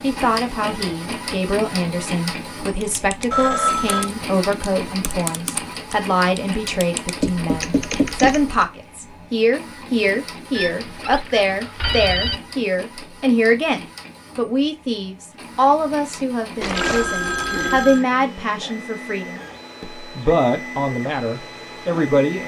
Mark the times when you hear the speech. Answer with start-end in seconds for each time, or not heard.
0.0-22.4.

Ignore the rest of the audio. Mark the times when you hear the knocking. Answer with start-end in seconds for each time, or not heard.
7.2-8.4.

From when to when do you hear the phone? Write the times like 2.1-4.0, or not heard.
3.3-4.1, 10.6-12.3, 16.6-18.1.